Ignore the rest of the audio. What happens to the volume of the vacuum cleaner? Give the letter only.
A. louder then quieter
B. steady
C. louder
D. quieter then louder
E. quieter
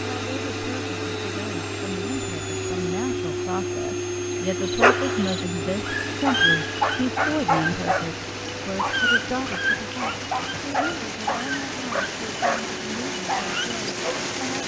E.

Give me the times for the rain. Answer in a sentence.
You can hear the rain from 5.5 to 14.6 s.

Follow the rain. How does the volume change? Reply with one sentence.
The volume of the rain goes up.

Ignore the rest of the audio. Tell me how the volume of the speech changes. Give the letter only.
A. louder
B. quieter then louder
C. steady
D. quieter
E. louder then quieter
E.